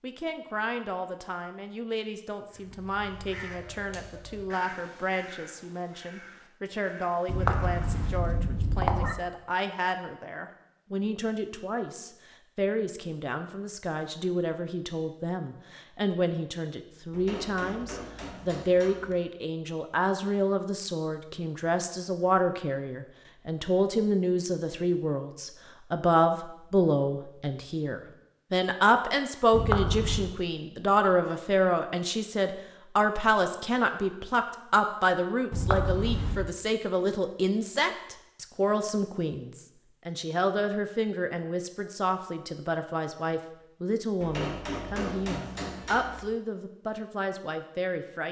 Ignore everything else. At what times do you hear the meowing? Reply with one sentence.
The meowing can be heard from 7.2 to 9.2 s, from 29.5 to 30.4 s and from 35.5 to 36.5 s.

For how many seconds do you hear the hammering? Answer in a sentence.
You can hear the hammering for 4 seconds altogether.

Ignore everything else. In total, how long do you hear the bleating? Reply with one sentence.
You can't hear the bleating here.